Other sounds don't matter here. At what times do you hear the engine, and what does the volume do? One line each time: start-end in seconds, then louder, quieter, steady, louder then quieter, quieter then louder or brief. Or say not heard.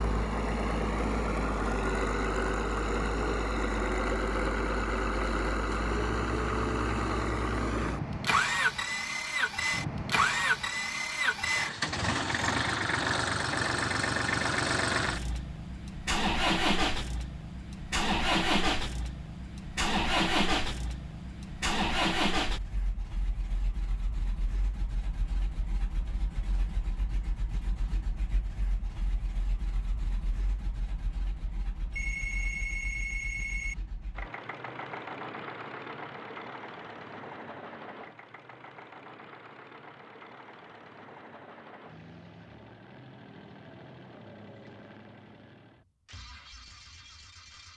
0.0-47.7 quieter.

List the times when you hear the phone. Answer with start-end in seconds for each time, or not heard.
31.9-33.8.